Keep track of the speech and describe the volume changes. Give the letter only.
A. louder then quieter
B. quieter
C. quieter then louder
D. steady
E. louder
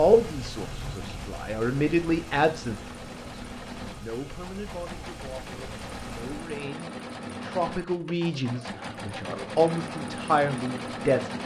C.